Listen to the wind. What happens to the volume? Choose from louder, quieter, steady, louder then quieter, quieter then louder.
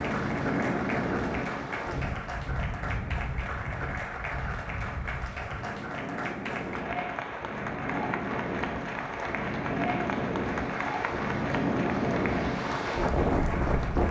quieter then louder.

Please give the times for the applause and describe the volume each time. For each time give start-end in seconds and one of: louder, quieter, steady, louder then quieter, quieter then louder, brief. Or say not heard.
0.0-14.0 steady.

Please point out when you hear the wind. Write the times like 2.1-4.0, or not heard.
0.0-14.0.